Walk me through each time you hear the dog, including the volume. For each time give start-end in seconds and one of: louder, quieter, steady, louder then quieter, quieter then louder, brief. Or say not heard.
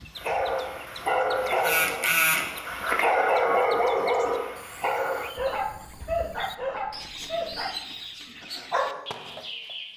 0.1-9.1 quieter.